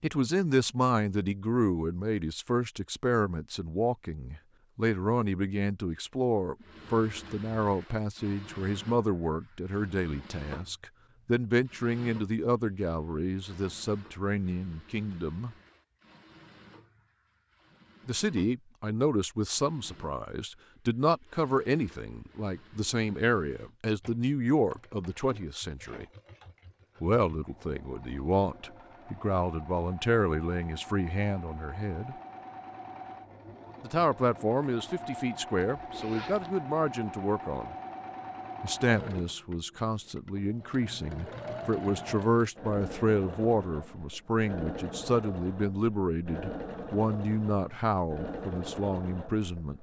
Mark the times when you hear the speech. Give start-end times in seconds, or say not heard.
0.0-15.6, 18.1-26.1, 27.0-32.1, 33.8-37.8, 38.6-49.7.